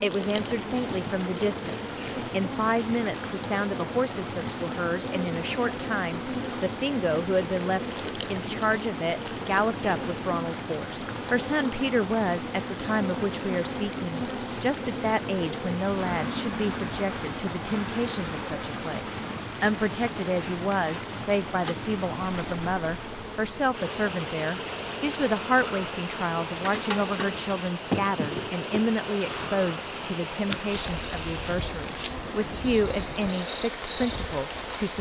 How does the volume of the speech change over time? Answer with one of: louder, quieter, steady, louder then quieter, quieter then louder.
steady.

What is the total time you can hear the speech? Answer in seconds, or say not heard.
35 s.